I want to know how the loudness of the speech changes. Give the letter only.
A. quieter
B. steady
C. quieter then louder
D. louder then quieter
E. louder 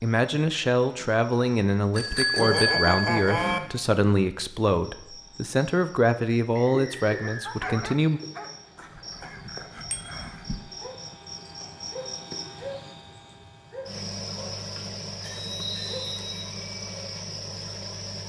B.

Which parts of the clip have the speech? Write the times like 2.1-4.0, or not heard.
0.0-8.2.